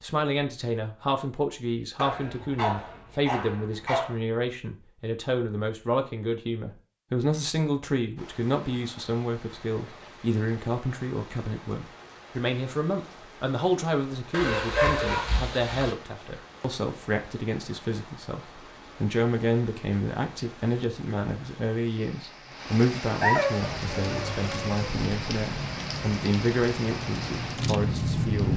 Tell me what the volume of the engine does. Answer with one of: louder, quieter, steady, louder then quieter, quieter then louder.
louder.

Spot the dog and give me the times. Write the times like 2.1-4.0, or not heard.
1.9-4.2, 14.3-15.9, 23.2-24.9.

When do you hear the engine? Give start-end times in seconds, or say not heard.
23.6-28.5.